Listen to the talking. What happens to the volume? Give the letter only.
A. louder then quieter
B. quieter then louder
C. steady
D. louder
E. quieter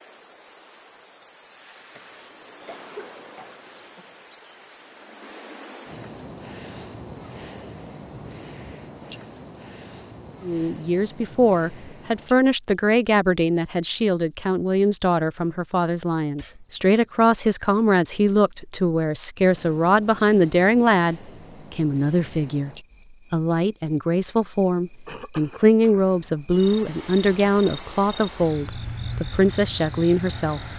C.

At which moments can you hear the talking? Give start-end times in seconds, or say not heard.
10.4-22.7, 23.3-30.6.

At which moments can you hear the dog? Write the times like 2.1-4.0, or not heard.
not heard.